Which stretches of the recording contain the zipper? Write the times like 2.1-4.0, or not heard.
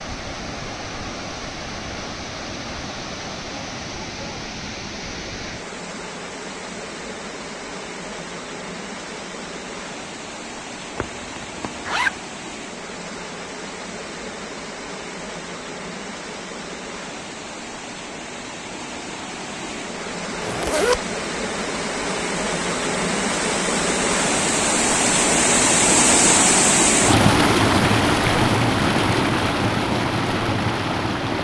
10.9-12.2, 20.4-21.0.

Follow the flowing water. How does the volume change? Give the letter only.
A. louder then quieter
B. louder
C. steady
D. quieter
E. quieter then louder
B.